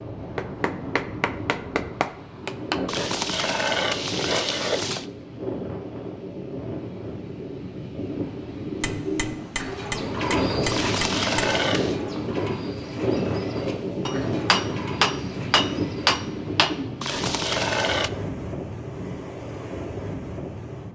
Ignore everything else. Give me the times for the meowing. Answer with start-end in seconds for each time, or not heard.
not heard.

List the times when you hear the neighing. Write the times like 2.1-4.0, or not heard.
2.9-5.0, 10.7-11.9, 17.0-18.1.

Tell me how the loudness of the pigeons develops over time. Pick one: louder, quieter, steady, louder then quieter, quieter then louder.
quieter.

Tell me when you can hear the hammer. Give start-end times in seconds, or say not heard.
0.3-2.8, 8.8-11.5, 14.1-16.8.